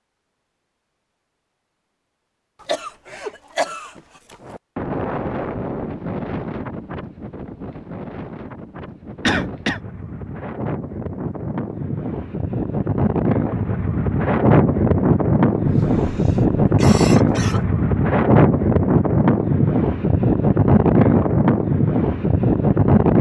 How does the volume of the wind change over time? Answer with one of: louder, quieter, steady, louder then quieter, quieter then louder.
louder.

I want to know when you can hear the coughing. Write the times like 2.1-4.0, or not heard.
2.6-4.3, 9.2-9.8, 15.6-17.6.